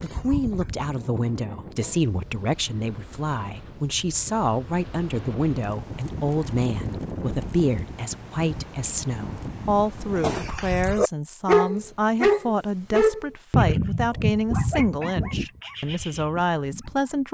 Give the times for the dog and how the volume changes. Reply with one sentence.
The dog can be heard briefly from 0.0 to 2.1 s; and from 10.1 to 17.2 s, getting quieter.